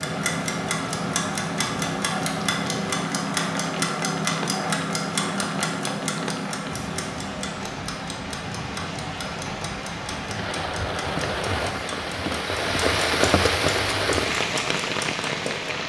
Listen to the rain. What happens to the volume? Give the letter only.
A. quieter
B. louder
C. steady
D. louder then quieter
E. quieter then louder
B.